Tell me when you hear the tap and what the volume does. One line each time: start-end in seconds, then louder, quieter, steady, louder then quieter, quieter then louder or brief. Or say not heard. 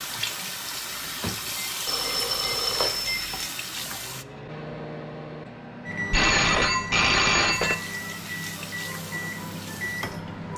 0.0-4.2 steady
7.5-10.5 brief.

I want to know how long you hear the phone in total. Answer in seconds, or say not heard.
3 s.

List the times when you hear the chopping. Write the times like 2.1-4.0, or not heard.
not heard.